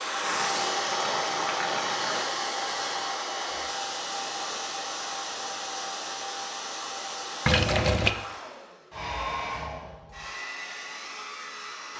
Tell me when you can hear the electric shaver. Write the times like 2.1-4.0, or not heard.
not heard.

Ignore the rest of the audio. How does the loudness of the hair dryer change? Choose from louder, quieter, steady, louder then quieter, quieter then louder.
quieter.